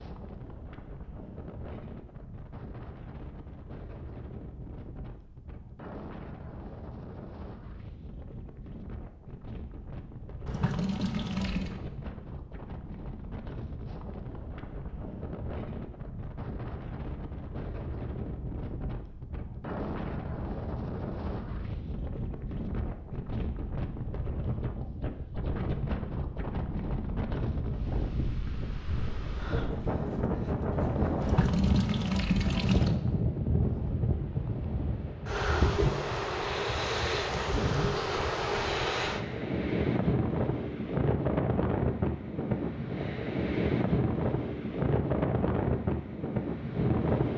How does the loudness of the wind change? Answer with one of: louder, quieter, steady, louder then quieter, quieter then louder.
louder.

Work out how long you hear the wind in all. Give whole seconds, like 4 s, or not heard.
47 s.